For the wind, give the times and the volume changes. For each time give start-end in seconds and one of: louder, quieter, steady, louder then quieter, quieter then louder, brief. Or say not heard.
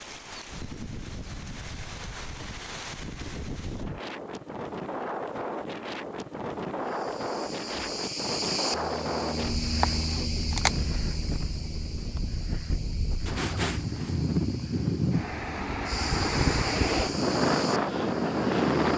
0.0-18.9 louder.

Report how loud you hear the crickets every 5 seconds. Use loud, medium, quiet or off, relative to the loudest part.
off, loud, loud, medium.